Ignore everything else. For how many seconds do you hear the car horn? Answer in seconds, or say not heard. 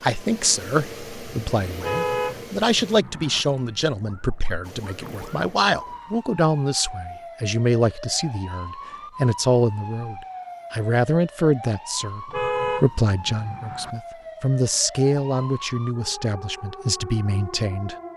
3 s.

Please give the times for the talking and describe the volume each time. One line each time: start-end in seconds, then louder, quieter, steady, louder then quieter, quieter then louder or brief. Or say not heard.
0.0-17.9 steady.